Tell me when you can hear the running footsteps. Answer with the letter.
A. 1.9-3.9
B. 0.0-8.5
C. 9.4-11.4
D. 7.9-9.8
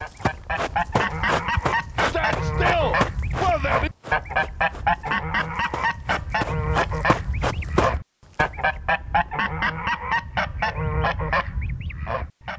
B.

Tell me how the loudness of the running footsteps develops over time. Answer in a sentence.
The loudness of the running footsteps goes down, then up.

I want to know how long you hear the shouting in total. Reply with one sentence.
You can hear the shouting for 2 seconds altogether.